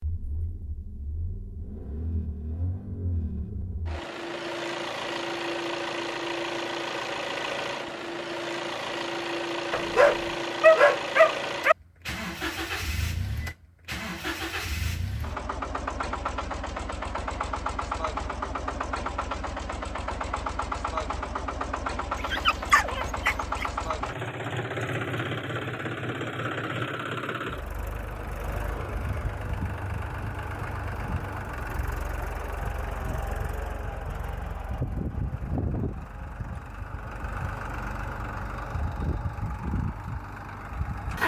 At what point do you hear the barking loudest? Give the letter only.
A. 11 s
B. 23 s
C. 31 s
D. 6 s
A.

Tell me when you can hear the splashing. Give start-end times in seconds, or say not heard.
not heard.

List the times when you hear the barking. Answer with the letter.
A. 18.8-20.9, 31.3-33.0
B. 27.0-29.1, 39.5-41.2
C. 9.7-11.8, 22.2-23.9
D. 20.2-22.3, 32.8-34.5
C.